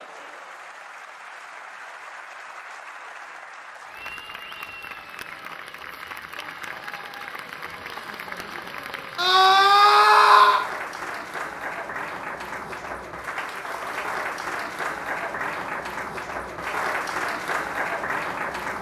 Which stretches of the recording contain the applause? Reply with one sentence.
You can hear the applause from 0.0 to 18.7 s.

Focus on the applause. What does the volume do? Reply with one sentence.
The volume of the applause goes up.